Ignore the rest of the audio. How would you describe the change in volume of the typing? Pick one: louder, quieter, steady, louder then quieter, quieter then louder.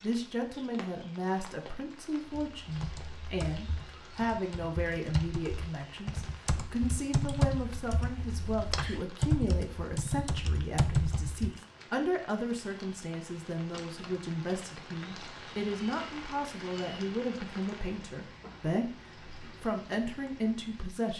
louder.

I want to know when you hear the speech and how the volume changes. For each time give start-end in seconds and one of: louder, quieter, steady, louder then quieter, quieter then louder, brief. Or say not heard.
0.0-21.1 steady.